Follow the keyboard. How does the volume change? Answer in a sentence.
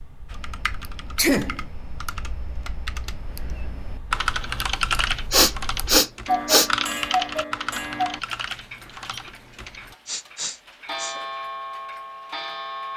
The volume of the keyboard goes up, then down.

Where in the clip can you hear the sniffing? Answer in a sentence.
You can hear the sniffing from 1.1 to 1.6 s, from 5.3 to 6.7 s and from 10.1 to 11.2 s.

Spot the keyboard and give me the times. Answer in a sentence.
You can hear the keyboard from 0.2 to 9.9 s.